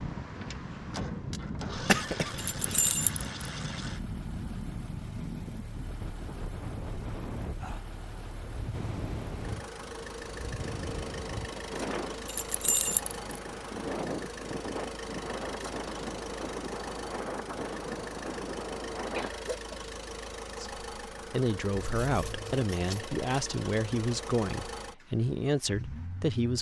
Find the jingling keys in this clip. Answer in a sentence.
The jingling keys can be heard from 2.5 to 3.2 s, from 12.2 to 13.2 s and from 21.7 to 23.1 s.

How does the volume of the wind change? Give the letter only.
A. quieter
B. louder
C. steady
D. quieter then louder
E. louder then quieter
C.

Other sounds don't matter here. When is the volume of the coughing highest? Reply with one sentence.
The loudest moment of the coughing is at 2 seconds.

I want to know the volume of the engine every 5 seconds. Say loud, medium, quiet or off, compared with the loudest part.
loud, medium, loud, loud, loud, medium.